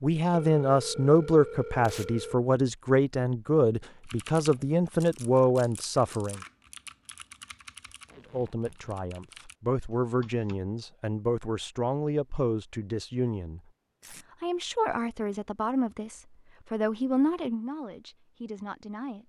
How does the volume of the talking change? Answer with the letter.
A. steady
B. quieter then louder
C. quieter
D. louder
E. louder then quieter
C.